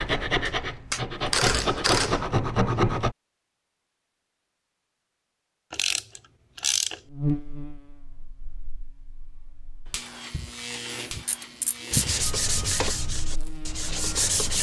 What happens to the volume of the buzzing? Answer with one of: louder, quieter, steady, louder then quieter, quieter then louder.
louder then quieter.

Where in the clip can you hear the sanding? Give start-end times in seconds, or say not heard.
0.0-3.1, 11.9-14.5.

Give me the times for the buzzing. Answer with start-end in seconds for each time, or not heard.
7.1-14.3.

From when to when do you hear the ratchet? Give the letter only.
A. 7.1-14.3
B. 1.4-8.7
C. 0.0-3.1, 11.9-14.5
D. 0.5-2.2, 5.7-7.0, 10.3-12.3
D.